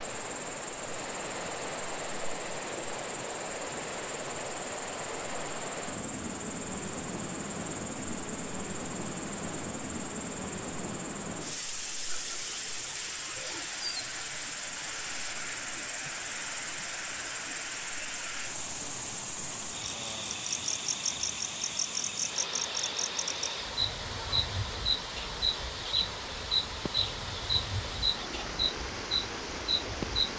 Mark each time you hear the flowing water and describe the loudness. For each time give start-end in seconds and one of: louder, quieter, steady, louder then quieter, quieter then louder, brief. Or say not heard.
0.0-30.3 steady.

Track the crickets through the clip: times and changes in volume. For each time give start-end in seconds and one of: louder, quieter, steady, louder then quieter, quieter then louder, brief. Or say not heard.
0.0-30.3 louder.